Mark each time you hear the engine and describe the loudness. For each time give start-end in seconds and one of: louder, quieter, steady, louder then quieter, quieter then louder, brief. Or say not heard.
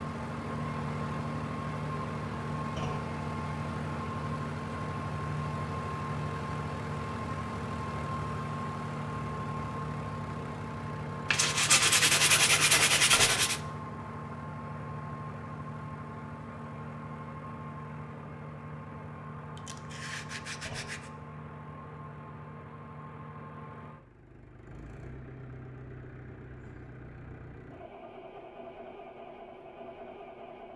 0.0-30.7 quieter.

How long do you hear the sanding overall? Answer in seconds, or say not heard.
4 s.